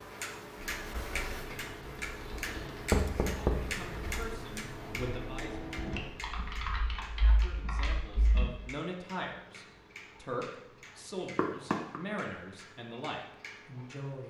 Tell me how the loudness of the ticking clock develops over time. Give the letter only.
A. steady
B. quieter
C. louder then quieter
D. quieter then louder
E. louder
B.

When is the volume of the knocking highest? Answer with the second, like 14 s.
3 s.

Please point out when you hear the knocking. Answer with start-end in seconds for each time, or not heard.
2.9-4.2, 11.3-12.0.